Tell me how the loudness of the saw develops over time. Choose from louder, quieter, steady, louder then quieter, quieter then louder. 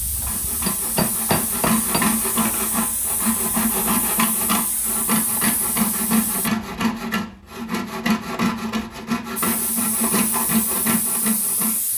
steady.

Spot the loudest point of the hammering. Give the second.
1 s.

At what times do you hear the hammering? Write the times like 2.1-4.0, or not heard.
0.2-2.6.